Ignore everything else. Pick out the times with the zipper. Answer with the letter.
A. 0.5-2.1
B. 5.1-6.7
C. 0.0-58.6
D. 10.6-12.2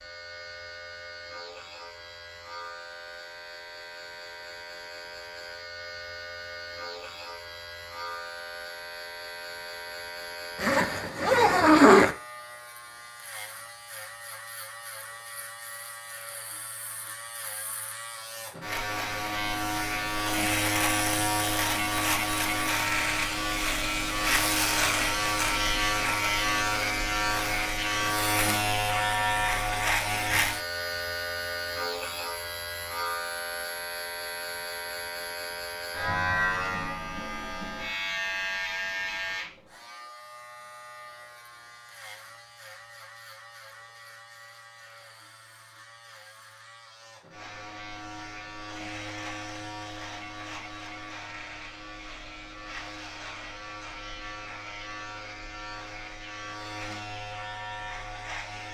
D.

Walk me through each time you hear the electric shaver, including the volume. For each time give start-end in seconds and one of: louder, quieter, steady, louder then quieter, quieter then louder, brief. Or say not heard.
0.0-58.6 louder then quieter.